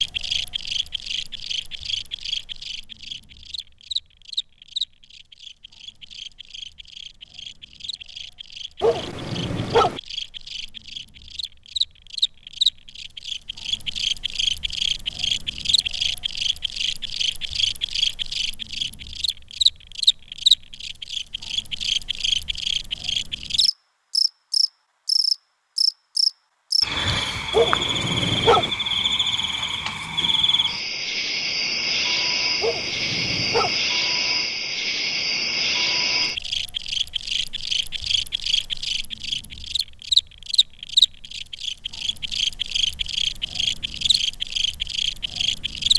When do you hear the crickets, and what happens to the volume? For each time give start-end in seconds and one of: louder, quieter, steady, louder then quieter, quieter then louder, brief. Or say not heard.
0.0-45.9 louder.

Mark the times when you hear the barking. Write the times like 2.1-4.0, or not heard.
8.8-10.0, 27.5-28.7, 32.6-33.8.